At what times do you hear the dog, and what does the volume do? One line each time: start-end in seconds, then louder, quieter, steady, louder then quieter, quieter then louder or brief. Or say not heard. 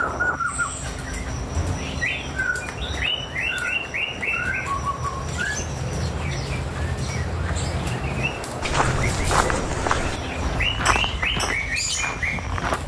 not heard.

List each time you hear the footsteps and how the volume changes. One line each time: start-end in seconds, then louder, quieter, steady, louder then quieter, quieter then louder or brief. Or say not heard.
8.6-12.8 quieter.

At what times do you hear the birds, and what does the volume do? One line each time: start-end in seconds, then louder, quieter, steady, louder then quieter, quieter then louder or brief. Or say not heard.
0.0-12.8 steady.